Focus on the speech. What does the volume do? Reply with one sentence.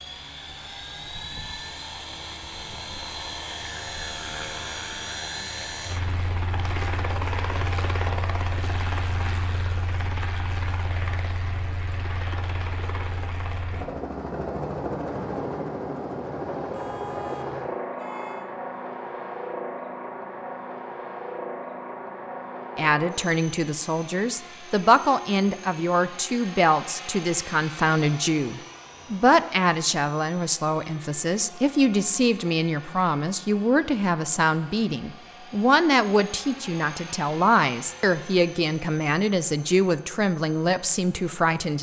The volume of the speech stays about the same.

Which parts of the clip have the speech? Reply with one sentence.
The speech can be heard from 22.8 to 41.7 s.